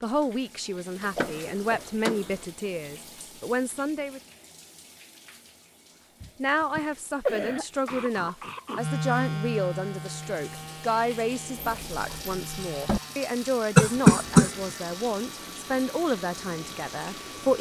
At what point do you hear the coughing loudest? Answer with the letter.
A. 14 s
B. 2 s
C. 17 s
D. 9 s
A.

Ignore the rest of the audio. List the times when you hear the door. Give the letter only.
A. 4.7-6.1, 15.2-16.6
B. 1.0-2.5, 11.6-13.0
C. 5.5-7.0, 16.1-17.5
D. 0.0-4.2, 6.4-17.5
B.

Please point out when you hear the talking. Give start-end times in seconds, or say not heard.
0.0-4.2, 6.4-17.5.